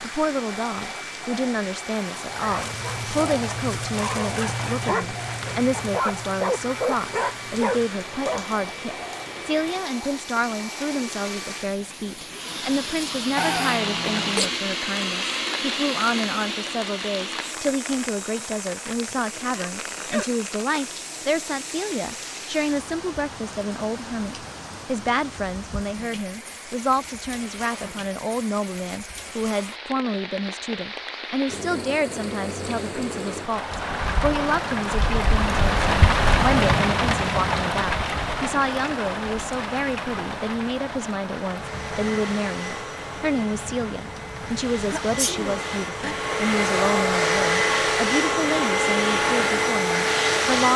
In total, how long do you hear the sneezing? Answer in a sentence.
You can hear the sneezing for 4 seconds altogether.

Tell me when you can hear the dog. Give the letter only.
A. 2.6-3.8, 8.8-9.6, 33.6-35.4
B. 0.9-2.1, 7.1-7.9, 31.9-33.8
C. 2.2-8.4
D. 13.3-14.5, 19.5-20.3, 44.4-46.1
C.